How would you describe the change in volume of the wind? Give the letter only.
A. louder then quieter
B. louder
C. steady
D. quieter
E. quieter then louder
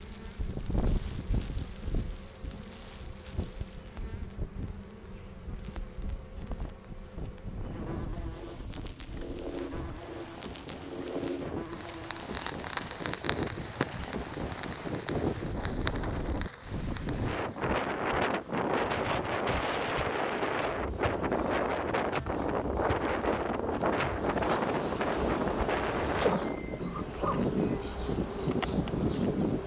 B.